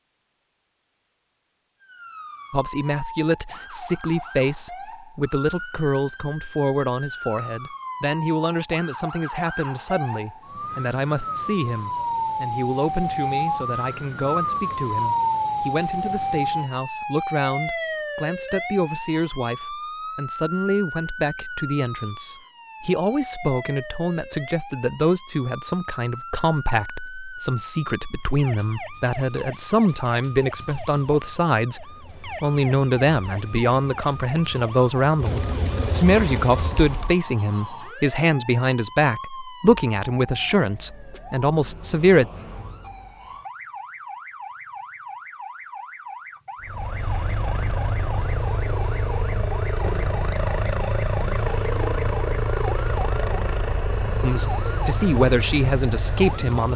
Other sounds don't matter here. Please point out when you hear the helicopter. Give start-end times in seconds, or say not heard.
31.6-37.1, 46.6-56.7.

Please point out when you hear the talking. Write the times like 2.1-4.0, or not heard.
2.5-42.2, 54.2-56.7.